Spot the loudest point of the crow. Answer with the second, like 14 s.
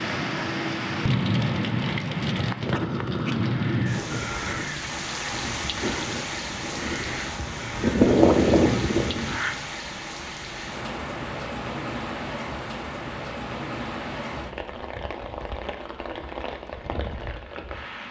8 s.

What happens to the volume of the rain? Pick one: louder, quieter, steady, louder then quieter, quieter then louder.
quieter.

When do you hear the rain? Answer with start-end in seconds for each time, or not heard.
0.0-18.0.